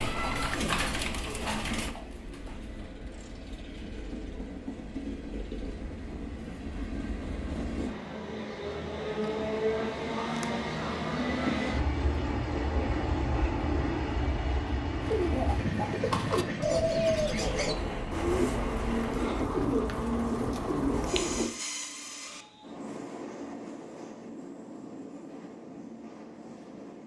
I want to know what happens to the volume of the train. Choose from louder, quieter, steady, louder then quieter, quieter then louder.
louder then quieter.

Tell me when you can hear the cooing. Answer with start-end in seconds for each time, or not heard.
0.0-2.9, 15.0-21.5.